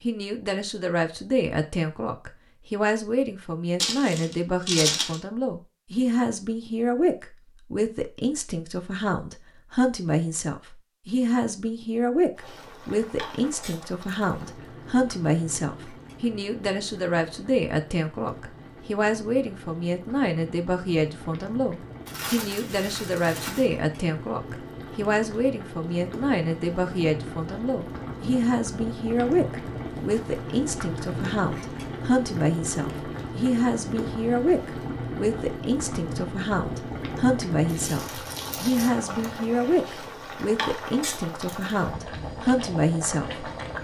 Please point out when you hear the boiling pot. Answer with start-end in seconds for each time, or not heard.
12.3-43.8.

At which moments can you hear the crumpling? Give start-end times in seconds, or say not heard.
3.8-5.2, 22.1-23.7, 37.6-38.9.